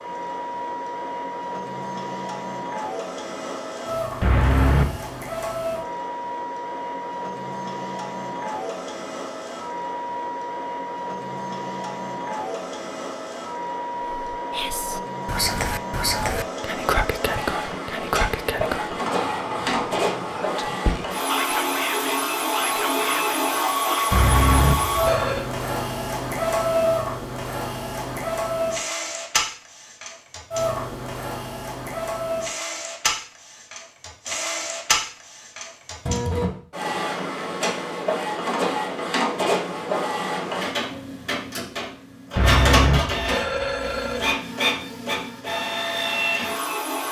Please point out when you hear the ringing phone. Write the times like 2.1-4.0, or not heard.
4.2-5.0, 24.1-25.4, 42.4-44.4.